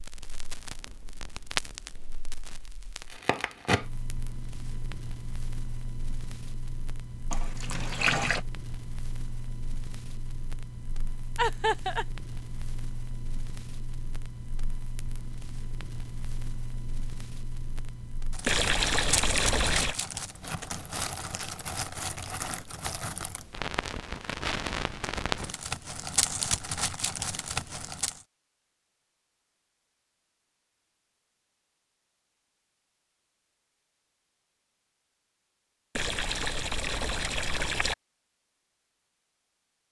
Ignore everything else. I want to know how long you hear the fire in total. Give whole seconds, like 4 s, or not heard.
28 s.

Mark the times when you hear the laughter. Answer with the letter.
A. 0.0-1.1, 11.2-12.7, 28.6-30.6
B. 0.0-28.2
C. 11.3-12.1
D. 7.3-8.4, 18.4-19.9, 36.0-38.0
C.